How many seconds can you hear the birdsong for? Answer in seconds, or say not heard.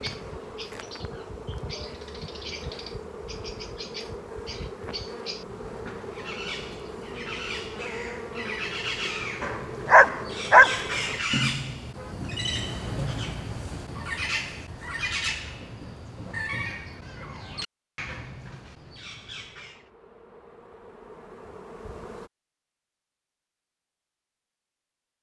20 s.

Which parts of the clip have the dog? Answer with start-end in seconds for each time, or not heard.
9.4-10.8.